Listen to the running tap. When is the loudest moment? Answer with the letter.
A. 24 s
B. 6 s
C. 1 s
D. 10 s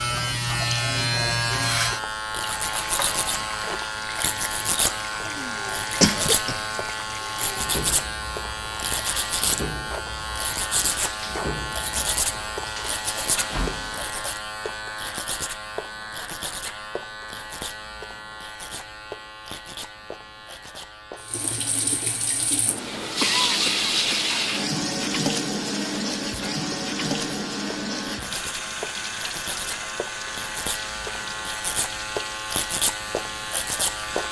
A.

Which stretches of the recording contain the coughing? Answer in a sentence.
You can hear the coughing from 5.2 to 6.7 s and from 23.1 to 24.2 s.